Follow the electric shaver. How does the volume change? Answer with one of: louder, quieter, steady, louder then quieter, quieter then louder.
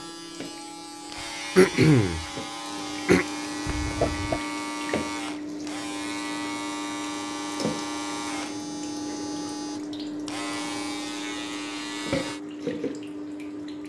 steady.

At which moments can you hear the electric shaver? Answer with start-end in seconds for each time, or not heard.
0.0-12.4.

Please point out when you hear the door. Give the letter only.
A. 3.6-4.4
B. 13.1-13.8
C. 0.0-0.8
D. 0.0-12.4
A.